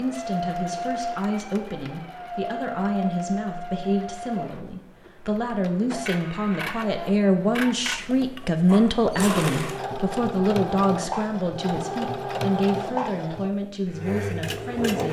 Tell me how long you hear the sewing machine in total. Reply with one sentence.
The sewing machine can be heard for 15 seconds in total.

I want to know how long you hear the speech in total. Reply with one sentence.
The speech can be heard for 15 seconds in total.